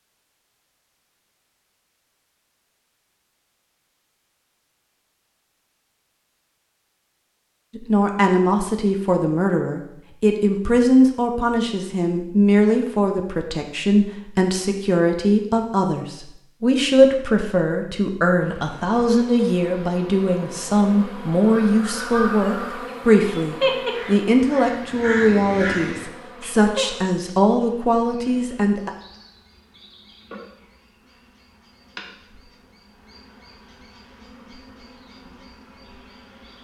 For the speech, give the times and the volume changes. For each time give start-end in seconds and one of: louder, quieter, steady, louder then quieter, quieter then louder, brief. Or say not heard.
7.8-28.9 steady.